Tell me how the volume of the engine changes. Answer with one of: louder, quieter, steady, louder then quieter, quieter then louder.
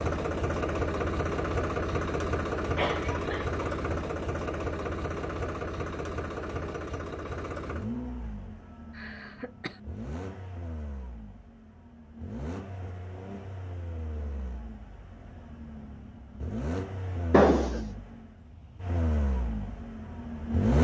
quieter then louder.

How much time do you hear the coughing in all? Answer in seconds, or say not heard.
2 s.